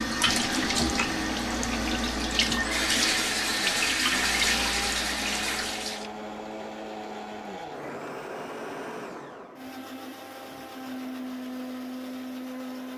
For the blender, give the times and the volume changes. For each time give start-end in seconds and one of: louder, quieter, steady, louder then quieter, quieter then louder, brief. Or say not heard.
0.2-12.9 steady.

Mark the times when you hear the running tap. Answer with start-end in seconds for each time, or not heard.
0.0-6.1.